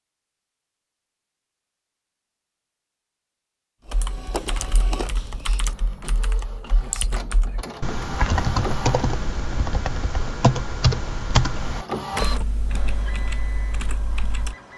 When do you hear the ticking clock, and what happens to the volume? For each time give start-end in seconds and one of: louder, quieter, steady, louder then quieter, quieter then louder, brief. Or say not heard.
not heard.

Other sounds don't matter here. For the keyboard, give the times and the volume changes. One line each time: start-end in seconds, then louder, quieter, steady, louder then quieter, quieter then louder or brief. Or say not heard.
3.9-14.6 louder then quieter.